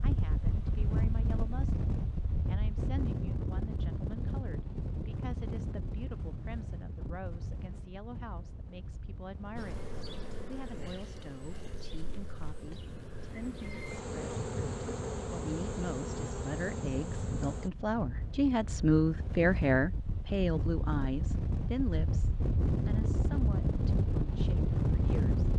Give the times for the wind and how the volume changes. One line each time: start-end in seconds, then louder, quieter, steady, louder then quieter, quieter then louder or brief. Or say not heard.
0.0-25.5 quieter then louder.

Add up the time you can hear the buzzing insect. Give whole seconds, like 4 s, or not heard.
8 s.